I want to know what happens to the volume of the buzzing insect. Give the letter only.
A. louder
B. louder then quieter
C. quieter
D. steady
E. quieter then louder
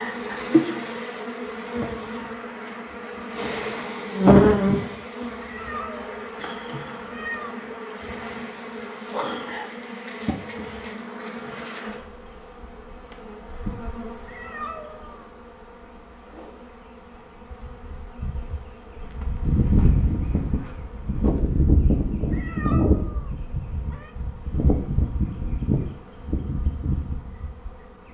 E.